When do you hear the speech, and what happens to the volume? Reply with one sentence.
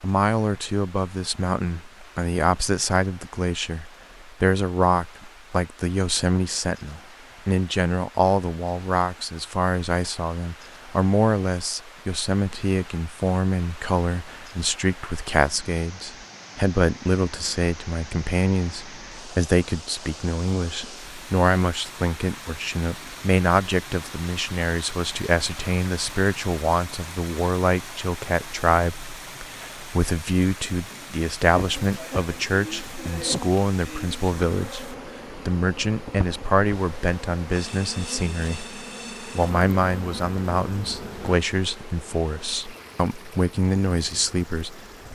The speech can be heard from 0.0 to 44.9 s, at a steady volume.